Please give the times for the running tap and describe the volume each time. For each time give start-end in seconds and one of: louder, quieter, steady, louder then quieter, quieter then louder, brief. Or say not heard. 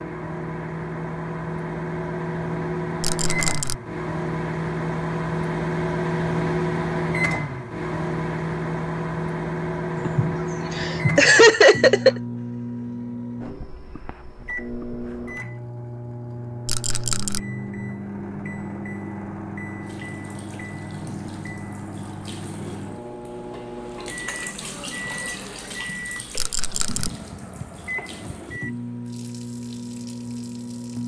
19.8-31.0 louder then quieter.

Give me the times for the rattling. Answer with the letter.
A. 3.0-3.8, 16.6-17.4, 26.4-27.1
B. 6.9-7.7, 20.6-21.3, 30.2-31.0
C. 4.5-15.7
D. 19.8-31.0
A.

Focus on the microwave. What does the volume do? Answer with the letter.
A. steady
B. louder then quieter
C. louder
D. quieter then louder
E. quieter
E.